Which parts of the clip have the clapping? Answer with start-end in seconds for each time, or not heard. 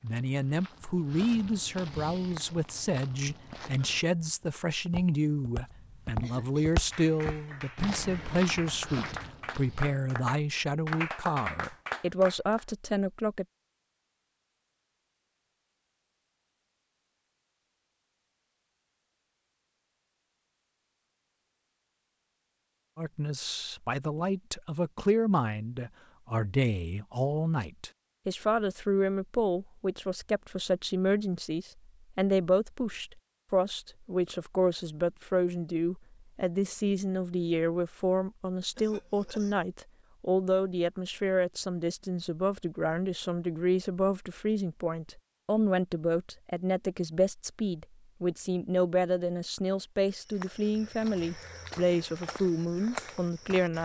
6.9-12.7.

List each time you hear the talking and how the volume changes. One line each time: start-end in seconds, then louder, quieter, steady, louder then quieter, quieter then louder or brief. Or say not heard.
0.0-13.4 steady
22.9-53.8 steady.